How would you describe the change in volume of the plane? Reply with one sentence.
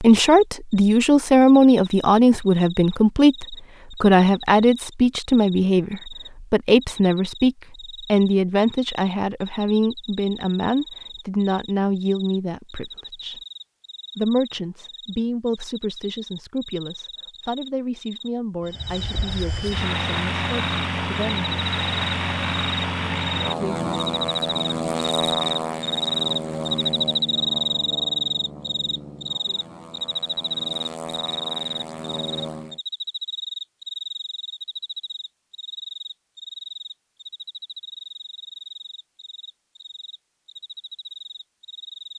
The volume of the plane goes down.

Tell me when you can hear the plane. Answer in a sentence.
The plane can be heard from 18.6 to 32.8 s.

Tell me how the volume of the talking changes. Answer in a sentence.
The loudness of the talking goes down.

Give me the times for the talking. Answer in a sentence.
You can hear the talking from 0.0 to 13.4 s and from 14.2 to 21.5 s.